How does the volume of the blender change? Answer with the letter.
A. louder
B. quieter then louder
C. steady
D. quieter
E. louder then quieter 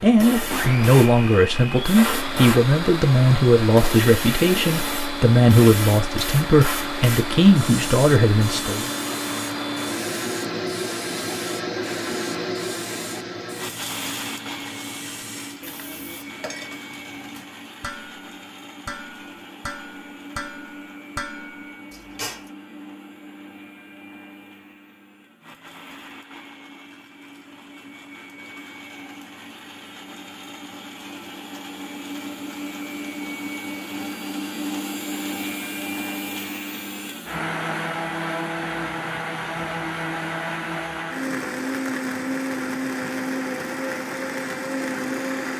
B.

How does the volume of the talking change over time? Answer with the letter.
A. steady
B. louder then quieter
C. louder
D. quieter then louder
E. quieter
A.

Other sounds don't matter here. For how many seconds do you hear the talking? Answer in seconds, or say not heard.
9 s.